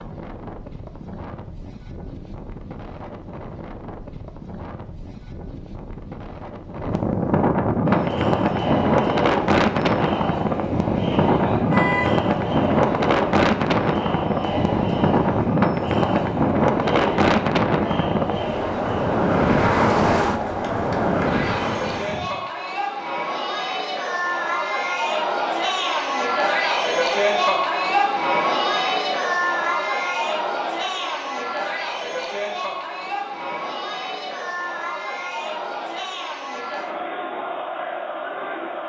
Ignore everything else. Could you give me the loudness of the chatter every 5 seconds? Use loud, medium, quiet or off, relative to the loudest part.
off, medium, medium, medium, medium, loud, medium, medium.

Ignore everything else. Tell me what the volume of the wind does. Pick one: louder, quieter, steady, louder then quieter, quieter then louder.
louder.